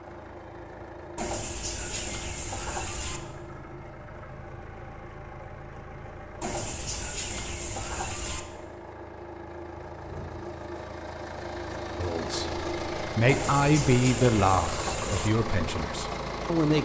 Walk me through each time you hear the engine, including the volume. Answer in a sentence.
The engine can be heard from 0.0 to 16.8 s, getting louder.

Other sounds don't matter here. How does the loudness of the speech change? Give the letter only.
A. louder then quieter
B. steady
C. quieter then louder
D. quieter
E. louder
A.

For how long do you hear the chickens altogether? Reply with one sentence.
The chickens can be heard for 6 seconds in total.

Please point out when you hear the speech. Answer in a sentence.
The speech can be heard from 11.9 to 16.8 s.